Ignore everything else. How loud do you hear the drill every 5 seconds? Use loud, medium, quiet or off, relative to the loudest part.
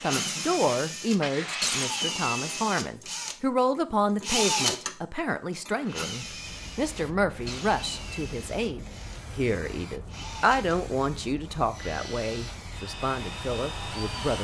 loud, medium, medium.